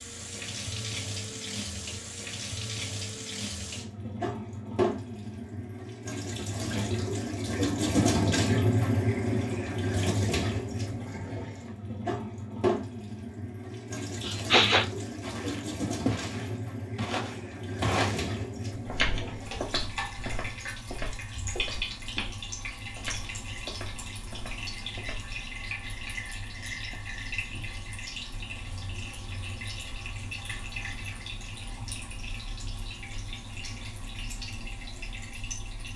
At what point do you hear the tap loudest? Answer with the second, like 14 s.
8 s.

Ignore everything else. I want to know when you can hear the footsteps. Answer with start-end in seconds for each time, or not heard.
15.2-25.3.